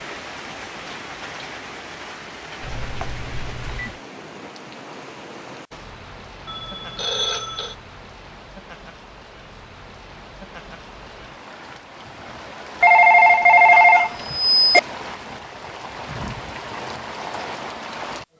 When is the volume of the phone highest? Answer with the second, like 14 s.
14 s.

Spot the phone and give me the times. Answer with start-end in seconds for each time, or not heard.
2.6-4.0, 6.5-7.8, 12.8-14.8.